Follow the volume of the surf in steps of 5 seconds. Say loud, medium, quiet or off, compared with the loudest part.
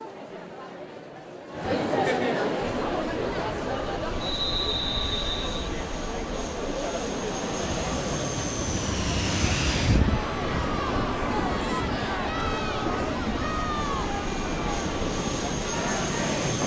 off, loud, loud, loud.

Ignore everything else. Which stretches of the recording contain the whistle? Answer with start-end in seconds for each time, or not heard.
4.2-5.7.